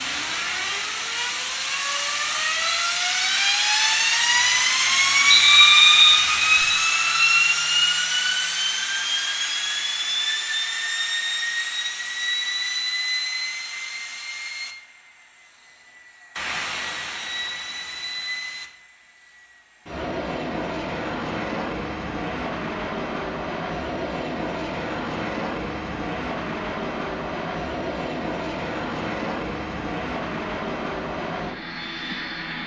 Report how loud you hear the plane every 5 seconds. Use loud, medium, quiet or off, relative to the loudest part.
loud, loud, medium, quiet, medium, medium, medium.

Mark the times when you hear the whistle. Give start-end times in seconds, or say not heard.
5.3-6.7.